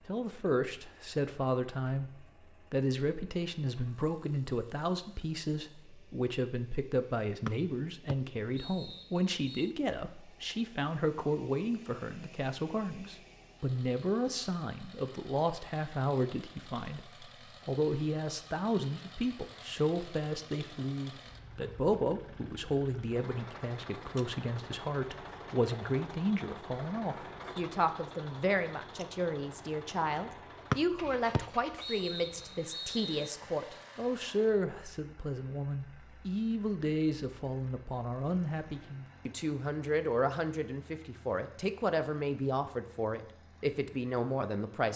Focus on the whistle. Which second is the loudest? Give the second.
31 s.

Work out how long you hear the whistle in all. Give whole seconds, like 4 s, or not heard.
5 s.